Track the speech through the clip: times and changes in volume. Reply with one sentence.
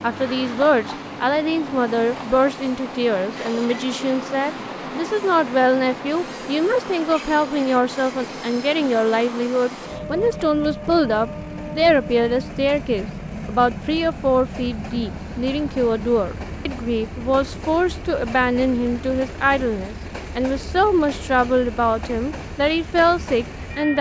You can hear the speech from 0.0 to 23.9 s, at a steady volume.